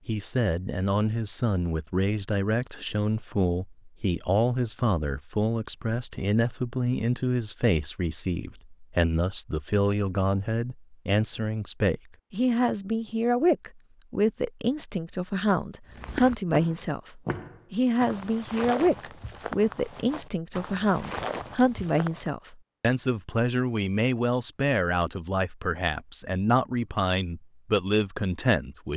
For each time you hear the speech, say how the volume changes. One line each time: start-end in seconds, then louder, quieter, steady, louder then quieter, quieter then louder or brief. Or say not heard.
0.1-28.9 steady.